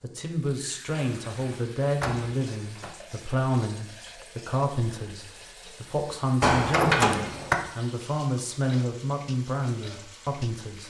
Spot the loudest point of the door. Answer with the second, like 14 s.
7 s.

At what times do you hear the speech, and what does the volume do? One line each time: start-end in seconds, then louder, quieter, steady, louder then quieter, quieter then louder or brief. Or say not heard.
0.0-10.8 steady.